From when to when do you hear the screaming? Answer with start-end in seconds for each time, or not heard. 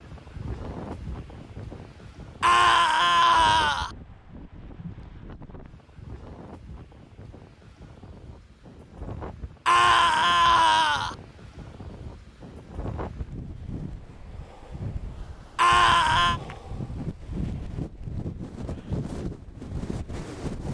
2.4-3.9, 9.7-11.2, 15.6-16.4.